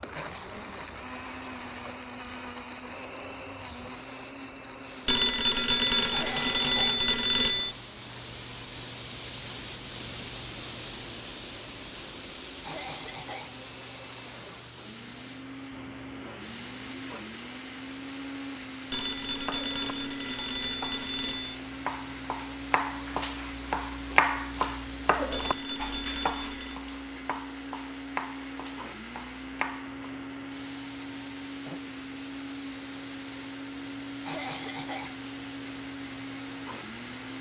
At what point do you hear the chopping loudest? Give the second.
24 s.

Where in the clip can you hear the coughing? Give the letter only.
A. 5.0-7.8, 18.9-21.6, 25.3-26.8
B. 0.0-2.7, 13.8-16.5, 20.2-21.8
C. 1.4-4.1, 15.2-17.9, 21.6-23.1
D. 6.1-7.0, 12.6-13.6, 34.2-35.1
D.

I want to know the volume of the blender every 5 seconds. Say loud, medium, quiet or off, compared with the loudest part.
loud, medium, medium, loud, loud, loud, loud, loud.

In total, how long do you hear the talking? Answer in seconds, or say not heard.
not heard.